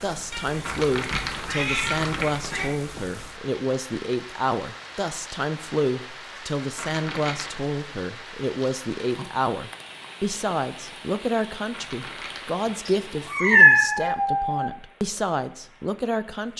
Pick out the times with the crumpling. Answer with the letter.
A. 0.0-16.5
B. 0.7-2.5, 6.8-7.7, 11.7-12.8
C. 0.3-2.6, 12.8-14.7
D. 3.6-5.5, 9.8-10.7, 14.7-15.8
B.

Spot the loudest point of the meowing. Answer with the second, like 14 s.
14 s.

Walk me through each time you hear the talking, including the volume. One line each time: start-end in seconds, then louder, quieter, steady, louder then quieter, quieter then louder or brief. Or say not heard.
0.0-16.5 steady.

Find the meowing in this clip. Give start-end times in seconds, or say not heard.
0.3-2.6, 12.8-14.7.